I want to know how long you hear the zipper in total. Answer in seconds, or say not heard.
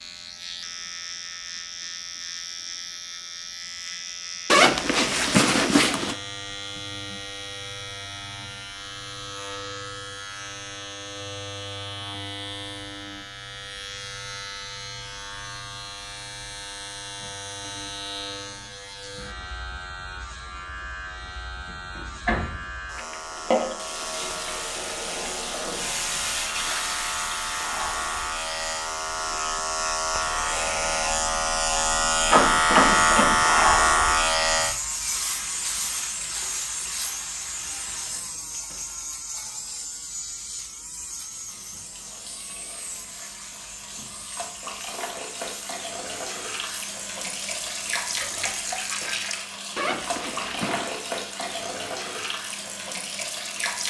3 s.